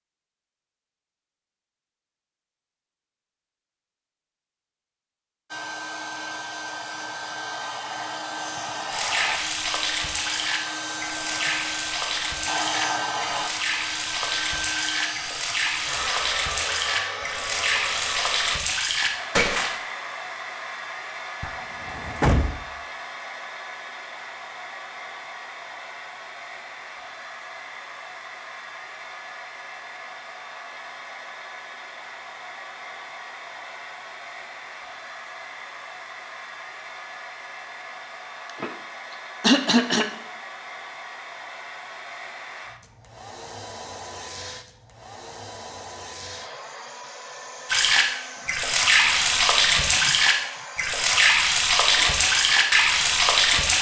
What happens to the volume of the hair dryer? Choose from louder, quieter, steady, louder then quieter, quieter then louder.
quieter.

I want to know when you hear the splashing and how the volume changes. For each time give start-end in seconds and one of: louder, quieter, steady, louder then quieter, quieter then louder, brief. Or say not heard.
8.9-19.7 steady
47.6-53.7 steady.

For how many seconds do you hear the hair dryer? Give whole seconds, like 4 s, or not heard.
48 s.